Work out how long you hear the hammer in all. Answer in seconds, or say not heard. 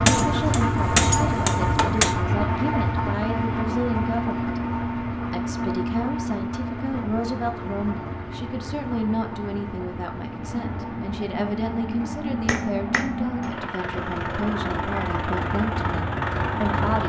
3 s.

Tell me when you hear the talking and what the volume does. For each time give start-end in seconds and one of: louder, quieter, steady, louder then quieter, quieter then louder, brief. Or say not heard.
0.1-17.0 steady.